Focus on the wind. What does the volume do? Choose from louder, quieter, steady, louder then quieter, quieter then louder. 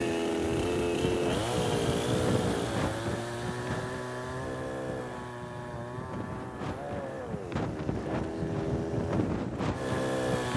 quieter then louder.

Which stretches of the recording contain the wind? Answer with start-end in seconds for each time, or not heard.
0.0-10.5.